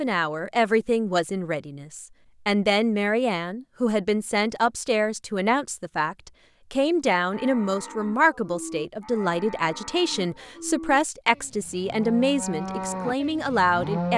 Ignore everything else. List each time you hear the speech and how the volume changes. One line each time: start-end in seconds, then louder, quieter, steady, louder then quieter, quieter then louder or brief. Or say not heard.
0.0-14.1 steady.